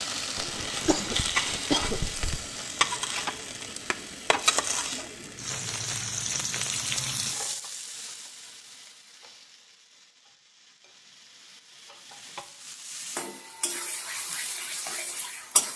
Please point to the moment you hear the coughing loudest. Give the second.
2 s.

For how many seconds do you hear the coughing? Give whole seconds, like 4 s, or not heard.
2 s.